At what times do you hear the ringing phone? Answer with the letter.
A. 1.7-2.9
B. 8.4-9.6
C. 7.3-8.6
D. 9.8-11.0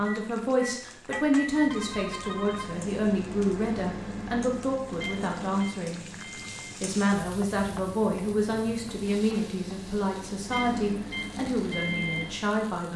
A.